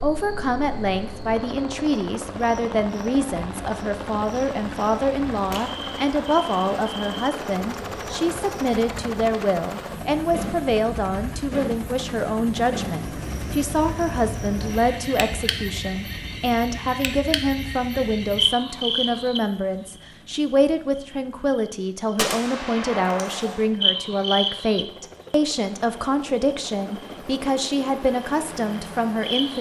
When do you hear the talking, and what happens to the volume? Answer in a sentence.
The talking can be heard from 0.0 to 29.5 s, at a steady volume.